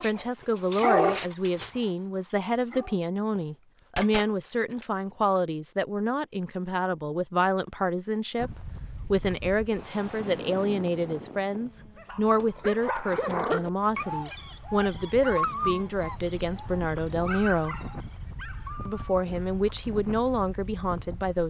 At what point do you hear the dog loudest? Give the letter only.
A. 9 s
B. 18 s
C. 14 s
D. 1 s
D.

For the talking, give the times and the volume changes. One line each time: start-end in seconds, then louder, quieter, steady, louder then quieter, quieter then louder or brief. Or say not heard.
0.0-17.8 steady
18.9-21.4 brief.